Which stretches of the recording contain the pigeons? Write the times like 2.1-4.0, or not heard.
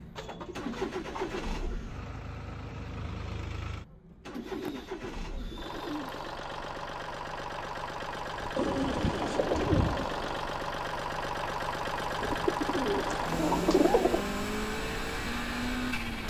0.1-1.8, 4.3-6.3, 8.6-10.4, 12.2-14.2.